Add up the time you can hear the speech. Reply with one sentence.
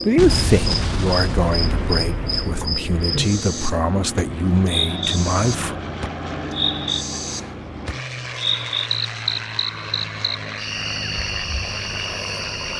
You can hear the speech for 6 seconds altogether.